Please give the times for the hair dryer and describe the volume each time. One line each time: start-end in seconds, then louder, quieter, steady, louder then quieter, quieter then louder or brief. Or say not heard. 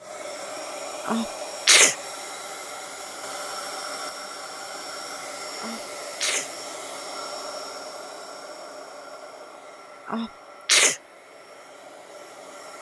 0.0-12.7 quieter.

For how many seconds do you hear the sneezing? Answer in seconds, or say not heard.
3 s.